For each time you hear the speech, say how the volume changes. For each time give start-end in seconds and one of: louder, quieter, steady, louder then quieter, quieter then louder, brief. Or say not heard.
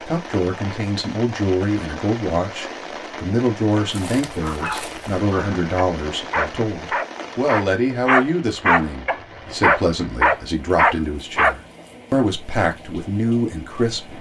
0.0-14.1 steady.